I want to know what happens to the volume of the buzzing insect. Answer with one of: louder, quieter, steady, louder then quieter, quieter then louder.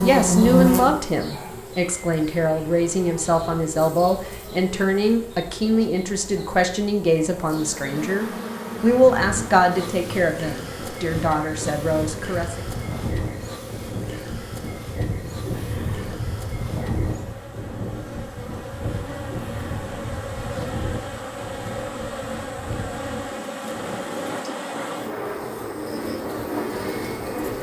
quieter then louder.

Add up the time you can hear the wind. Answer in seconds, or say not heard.
19 s.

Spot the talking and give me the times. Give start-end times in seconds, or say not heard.
0.0-12.7.